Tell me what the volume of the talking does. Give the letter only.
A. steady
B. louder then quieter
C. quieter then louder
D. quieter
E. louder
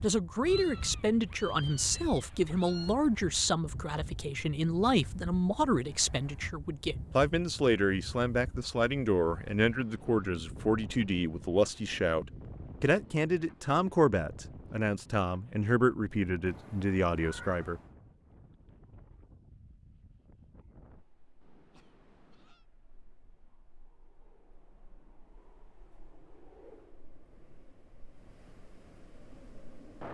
A.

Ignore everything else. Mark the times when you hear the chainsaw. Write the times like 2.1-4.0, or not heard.
not heard.